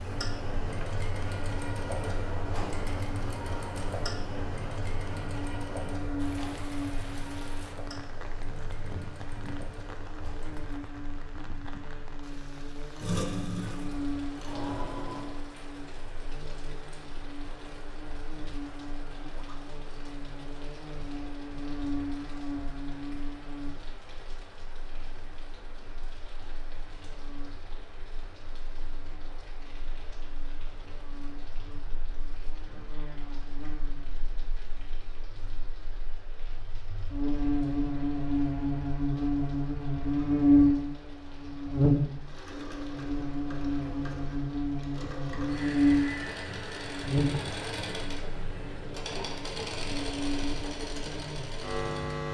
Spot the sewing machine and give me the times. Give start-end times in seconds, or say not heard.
0.0-10.9, 12.9-15.4, 42.2-52.2.